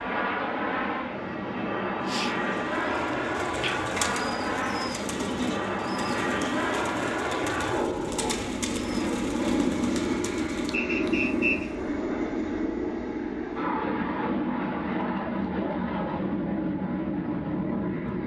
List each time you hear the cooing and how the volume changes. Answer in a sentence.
You can hear the cooing from 2.0 to 11.8 s, at a steady volume.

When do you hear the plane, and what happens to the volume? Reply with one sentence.
You can hear the plane from 0.0 to 18.2 s, at a steady volume.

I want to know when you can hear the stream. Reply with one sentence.
The stream can't be heard in this clip.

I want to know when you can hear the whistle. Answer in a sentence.
You can hear the whistle from 10.7 to 11.8 s.